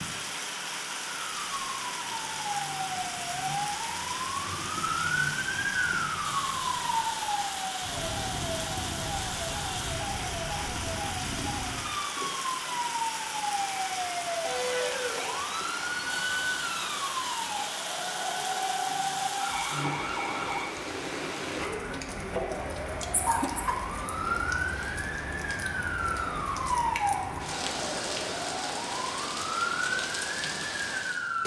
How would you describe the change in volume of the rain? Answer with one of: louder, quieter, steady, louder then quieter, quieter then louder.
steady.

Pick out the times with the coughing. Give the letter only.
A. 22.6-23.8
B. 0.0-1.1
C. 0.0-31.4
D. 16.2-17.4
A.